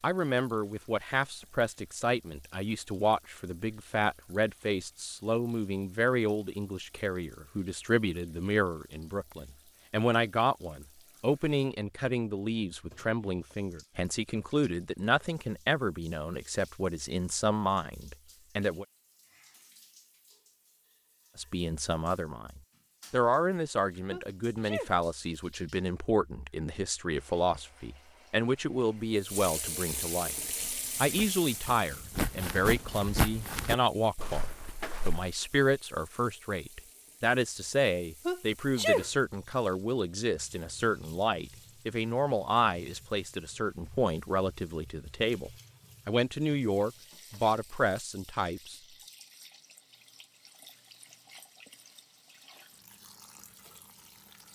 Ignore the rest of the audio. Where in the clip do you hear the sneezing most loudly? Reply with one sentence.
The loudest moment of the sneezing is at 39 seconds.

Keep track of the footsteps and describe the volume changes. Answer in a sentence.
The loudness of the footsteps goes up, then down.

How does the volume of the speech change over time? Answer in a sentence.
The loudness of the speech stays about the same.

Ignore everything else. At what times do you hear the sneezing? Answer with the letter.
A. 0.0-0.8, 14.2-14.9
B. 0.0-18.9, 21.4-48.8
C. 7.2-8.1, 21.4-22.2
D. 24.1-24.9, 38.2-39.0
D.